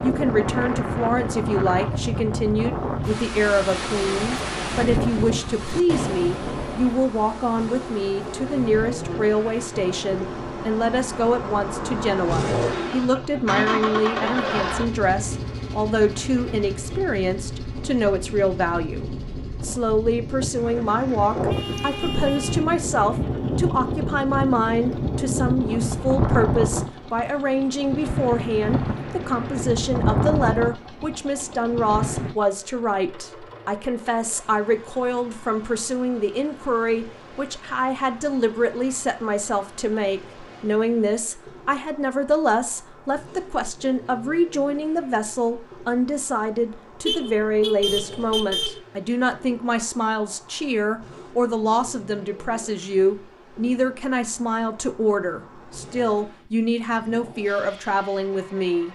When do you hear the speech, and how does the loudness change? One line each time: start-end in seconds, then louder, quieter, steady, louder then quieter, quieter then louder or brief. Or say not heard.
0.0-58.9 steady.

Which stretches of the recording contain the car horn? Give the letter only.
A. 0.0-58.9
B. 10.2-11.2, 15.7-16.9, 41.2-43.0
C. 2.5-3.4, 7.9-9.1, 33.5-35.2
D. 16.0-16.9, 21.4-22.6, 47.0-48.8
D.